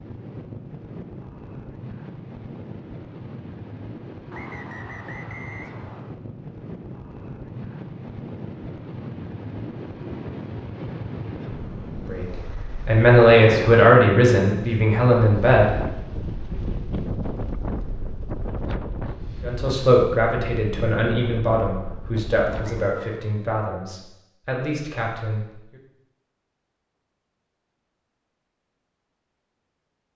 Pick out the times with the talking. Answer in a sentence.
The talking can be heard from 12.1 to 15.7 s and from 19.4 to 25.8 s.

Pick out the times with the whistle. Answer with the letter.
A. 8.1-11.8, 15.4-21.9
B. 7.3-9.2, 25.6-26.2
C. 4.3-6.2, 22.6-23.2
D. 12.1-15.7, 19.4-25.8
C.